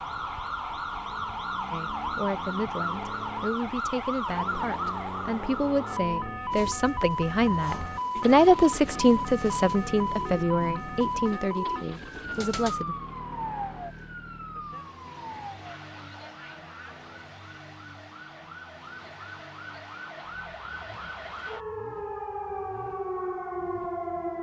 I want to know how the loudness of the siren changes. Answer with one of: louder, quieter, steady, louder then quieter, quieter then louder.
quieter then louder.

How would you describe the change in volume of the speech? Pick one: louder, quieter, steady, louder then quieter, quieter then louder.
louder then quieter.